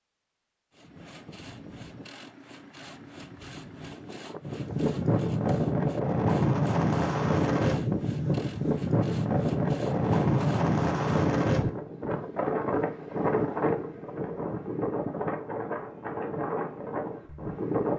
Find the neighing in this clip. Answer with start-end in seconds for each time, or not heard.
not heard.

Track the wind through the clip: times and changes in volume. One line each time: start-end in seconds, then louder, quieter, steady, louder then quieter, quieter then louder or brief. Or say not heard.
4.5-17.9 quieter.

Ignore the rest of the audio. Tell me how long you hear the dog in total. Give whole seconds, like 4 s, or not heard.
not heard.